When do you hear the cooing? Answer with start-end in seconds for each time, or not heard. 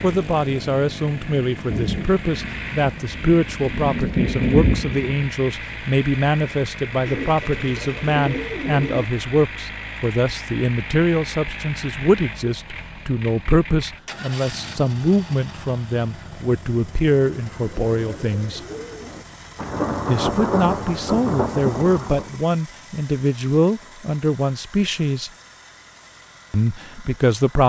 7.0-9.1, 17.2-19.2.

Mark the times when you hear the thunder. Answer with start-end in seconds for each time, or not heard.
1.7-5.2, 19.6-22.4.